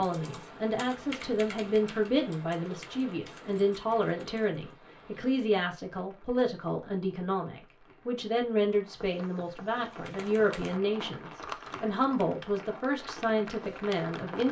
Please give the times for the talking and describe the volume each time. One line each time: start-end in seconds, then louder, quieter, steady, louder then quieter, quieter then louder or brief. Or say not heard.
0.0-14.4 steady.